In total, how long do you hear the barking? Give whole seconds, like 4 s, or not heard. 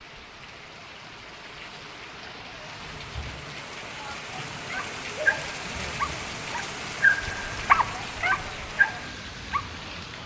5 s.